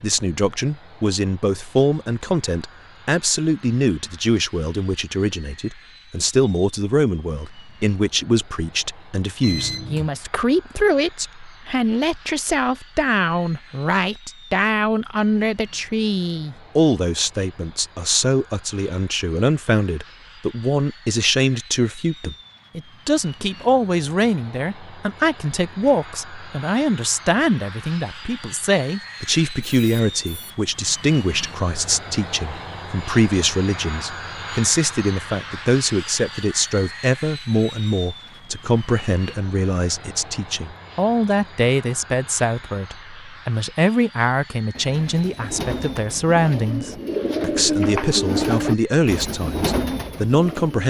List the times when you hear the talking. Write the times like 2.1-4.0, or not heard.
0.0-50.8.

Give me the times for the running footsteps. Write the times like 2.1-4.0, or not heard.
not heard.